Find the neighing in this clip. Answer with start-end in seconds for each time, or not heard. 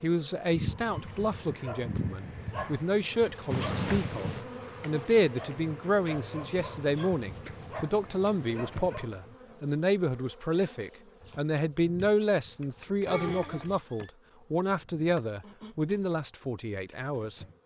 3.5-4.5, 13.1-14.1.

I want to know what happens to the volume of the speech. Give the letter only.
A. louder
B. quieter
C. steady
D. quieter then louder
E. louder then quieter
C.